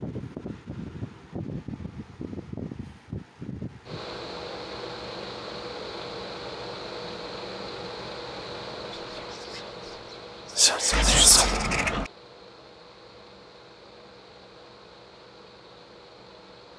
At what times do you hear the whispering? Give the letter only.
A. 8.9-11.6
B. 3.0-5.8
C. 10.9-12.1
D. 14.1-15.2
A.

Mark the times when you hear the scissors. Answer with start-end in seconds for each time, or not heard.
10.9-12.1.